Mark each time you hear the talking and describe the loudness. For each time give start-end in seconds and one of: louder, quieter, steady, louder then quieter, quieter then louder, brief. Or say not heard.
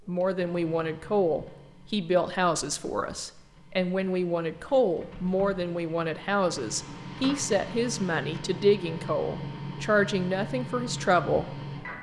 0.1-11.6 steady.